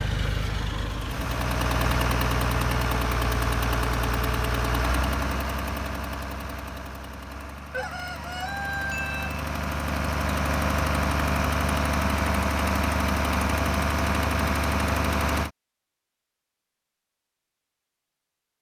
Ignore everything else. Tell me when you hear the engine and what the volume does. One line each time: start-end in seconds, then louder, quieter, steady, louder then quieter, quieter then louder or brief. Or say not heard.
0.0-15.5 quieter then louder.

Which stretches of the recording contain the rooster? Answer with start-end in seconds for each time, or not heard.
7.7-9.4.